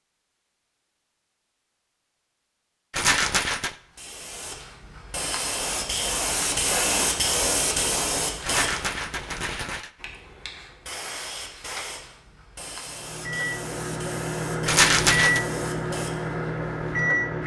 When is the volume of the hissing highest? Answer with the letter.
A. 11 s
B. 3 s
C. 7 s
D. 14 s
C.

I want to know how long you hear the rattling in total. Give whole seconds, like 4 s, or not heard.
3 s.